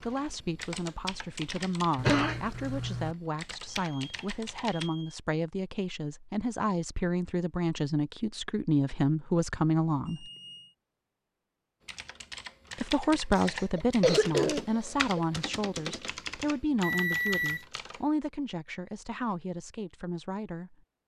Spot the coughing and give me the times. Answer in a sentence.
The coughing can be heard from 1.9 to 3.1 s and from 13.3 to 15.2 s.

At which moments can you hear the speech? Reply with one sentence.
You can hear the speech from 0.0 to 10.2 s and from 12.8 to 20.8 s.